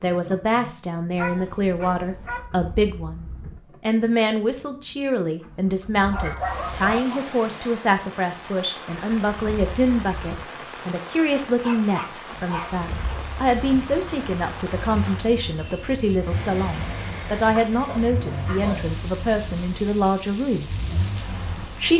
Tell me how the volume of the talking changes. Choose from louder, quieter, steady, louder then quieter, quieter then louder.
steady.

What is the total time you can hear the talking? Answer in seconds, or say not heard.
22 s.